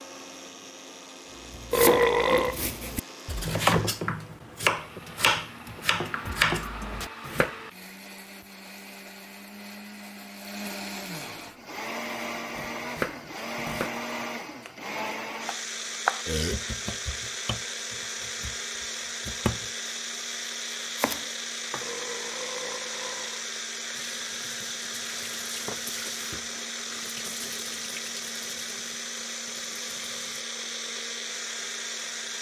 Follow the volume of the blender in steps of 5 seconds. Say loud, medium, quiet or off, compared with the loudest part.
medium, medium, loud, loud, loud, loud, loud.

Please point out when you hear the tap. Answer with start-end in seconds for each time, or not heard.
23.9-30.4.